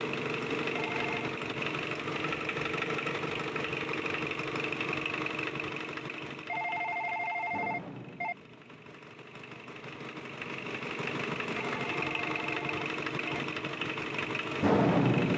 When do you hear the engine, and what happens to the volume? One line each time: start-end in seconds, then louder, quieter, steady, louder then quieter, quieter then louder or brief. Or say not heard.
0.0-15.3 quieter then louder.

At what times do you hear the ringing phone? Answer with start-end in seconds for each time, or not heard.
0.8-1.4, 6.5-8.3, 11.6-13.4.